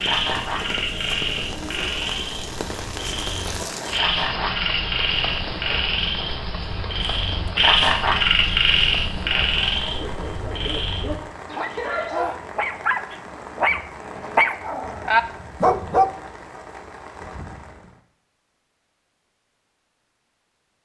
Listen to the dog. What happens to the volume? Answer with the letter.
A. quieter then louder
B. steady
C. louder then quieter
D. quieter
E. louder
E.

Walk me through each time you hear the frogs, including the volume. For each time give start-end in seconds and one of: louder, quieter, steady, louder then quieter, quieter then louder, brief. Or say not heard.
0.0-12.2 louder then quieter.